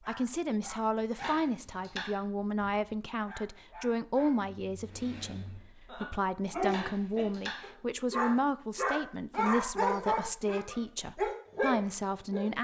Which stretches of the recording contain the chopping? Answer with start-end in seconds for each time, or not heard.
1.1-2.2, 6.7-7.7.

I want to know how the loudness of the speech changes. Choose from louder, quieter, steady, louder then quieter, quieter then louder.
steady.